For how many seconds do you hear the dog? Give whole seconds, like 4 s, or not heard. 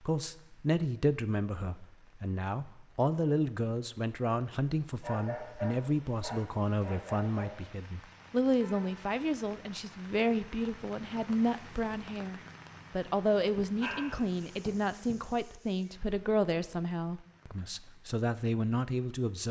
4 s.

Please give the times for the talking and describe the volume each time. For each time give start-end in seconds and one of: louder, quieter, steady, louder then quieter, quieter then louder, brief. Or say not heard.
0.0-19.4 steady.